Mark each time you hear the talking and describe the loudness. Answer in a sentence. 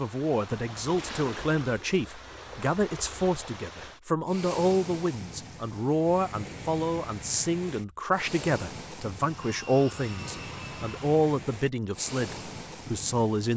You can hear the talking from 0.0 to 13.5 s, at a steady volume.